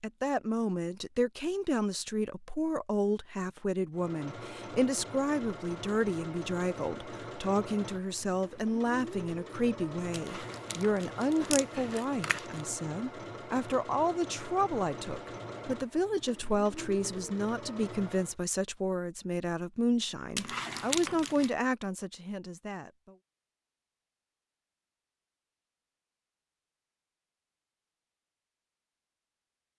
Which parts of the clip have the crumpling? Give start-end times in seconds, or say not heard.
10.1-12.7, 20.4-21.5.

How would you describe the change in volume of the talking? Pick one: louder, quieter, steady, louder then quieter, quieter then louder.
steady.